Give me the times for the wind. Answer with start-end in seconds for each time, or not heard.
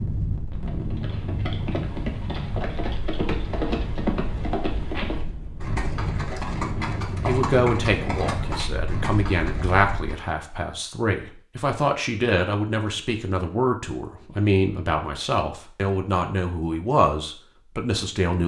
0.0-10.2.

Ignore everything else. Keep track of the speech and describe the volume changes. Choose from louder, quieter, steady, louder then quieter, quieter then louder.
steady.